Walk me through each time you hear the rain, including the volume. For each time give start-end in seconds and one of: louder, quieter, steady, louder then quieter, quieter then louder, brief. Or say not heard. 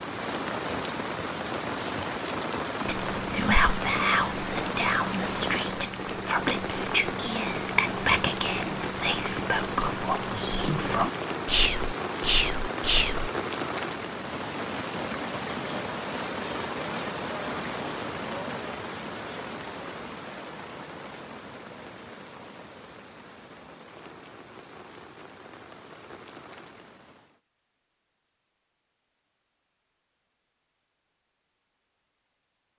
0.0-27.4 quieter.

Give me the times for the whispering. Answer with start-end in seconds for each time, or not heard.
2.9-13.3.